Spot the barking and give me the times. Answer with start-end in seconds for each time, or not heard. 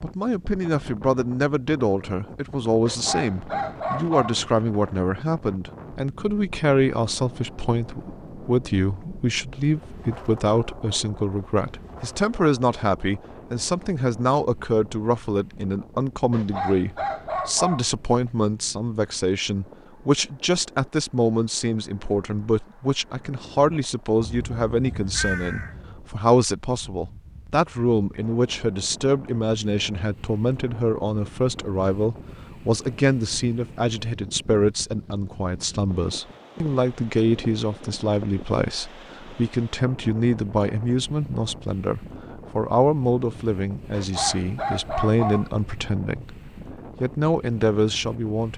2.9-4.4, 16.3-17.9, 43.9-45.5.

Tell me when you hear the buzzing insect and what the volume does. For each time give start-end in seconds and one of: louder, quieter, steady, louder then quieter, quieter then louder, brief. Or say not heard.
not heard.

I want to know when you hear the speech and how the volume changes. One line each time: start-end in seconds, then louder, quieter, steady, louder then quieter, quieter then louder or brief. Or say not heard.
0.0-48.5 steady.